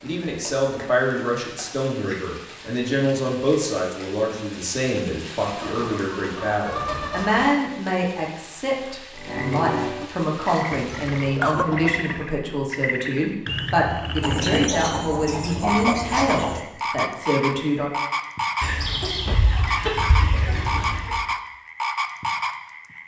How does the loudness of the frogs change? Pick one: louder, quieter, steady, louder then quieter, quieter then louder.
steady.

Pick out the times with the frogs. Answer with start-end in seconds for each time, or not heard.
9.1-14.7, 15.7-23.0.